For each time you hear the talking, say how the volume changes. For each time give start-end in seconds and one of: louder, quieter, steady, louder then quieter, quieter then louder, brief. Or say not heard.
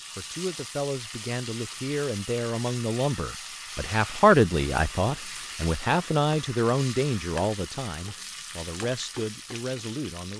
0.1-10.3 louder then quieter.